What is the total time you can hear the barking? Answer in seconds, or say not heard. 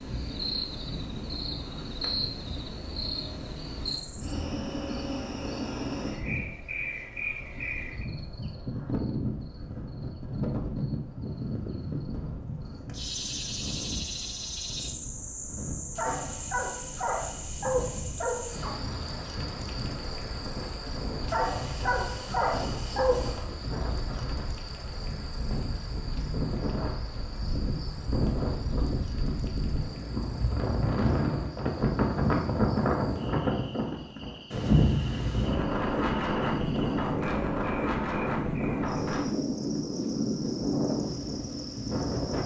5 s.